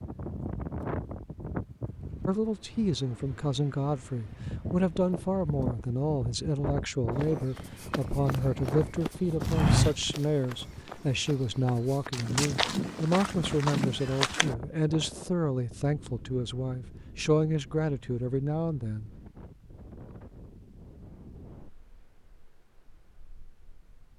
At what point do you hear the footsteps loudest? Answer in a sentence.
The loudest moment of the footsteps is at 10 seconds.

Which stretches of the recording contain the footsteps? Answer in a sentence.
The footsteps can be heard from 7.2 to 14.6 s.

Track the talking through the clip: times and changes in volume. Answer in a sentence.
You can hear the talking from 2.2 to 19.1 s, at a steady volume.